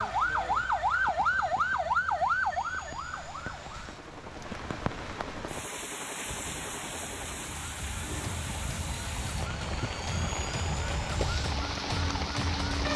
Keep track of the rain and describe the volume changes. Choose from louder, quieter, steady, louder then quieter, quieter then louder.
louder.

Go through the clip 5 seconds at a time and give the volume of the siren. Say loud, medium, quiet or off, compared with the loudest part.
loud, quiet, medium.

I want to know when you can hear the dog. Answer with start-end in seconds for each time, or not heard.
not heard.